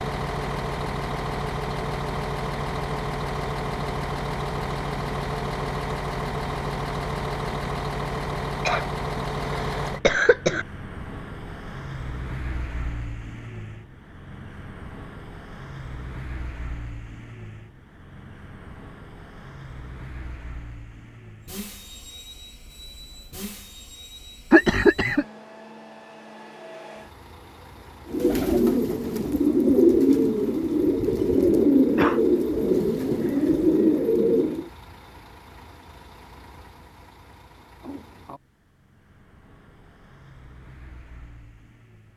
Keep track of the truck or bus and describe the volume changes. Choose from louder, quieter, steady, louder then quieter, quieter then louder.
quieter.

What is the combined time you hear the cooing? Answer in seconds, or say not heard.
7 s.